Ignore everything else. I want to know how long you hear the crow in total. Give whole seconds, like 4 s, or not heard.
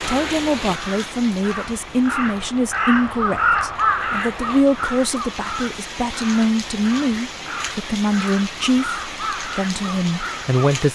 11 s.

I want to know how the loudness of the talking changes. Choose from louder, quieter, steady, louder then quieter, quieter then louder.
steady.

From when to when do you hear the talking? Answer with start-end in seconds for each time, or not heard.
0.0-10.8.